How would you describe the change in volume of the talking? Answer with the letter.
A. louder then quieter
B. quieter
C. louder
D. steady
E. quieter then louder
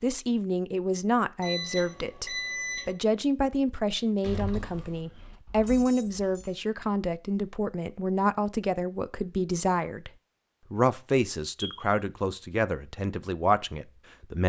D.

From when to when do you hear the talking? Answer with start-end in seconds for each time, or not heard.
0.0-10.1, 10.7-14.4.